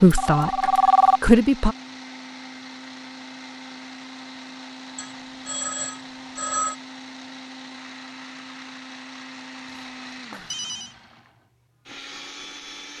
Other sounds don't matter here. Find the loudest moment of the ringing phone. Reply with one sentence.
The volume of the ringing phone peaks at 1 second.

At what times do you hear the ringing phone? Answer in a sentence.
The ringing phone can be heard from 0.1 to 1.2 s, from 5.0 to 6.8 s and from 9.8 to 10.9 s.